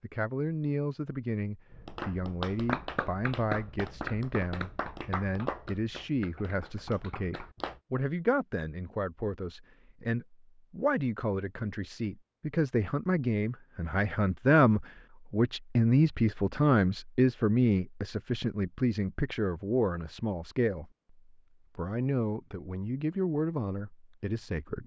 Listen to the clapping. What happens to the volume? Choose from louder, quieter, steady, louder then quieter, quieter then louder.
quieter.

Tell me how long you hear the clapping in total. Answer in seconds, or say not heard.
6 s.